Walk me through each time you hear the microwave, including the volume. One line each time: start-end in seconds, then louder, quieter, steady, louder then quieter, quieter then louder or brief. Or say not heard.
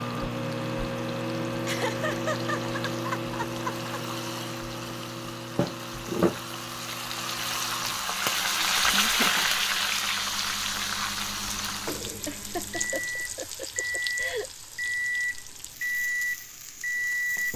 0.0-17.5 quieter then louder.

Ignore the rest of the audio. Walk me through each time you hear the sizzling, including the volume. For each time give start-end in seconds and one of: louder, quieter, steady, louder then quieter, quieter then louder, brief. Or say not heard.
0.0-17.5 louder then quieter.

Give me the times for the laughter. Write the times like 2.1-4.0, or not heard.
1.6-4.0, 8.5-9.5, 12.2-14.5.